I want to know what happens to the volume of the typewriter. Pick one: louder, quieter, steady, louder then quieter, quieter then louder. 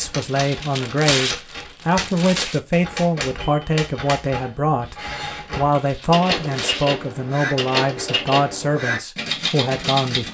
louder.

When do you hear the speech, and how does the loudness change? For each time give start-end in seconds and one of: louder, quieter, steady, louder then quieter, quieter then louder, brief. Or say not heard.
0.0-10.2 steady.